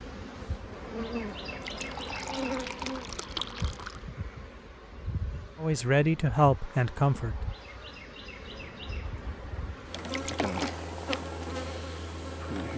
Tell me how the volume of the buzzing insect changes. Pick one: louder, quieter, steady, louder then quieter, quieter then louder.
quieter then louder.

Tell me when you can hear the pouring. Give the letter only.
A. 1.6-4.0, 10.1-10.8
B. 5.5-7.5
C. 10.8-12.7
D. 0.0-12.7
A.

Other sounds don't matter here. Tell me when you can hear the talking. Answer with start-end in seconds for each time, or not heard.
5.5-7.5.